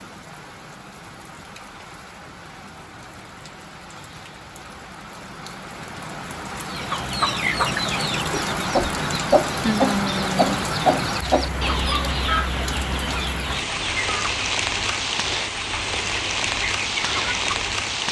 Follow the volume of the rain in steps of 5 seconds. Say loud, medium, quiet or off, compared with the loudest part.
quiet, loud, loud, loud.